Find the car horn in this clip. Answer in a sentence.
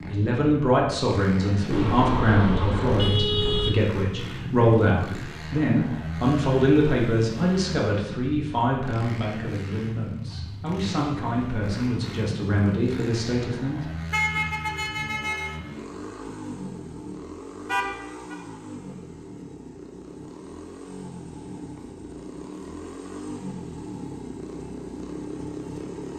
You can hear the car horn from 1.7 to 3.7 s, from 14.1 to 15.6 s and from 17.6 to 18.4 s.